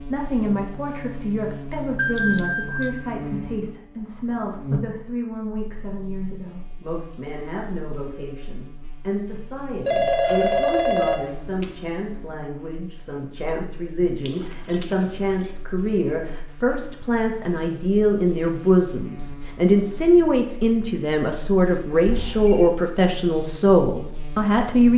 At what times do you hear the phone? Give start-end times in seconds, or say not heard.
1.9-3.0, 9.8-11.8, 22.1-22.7.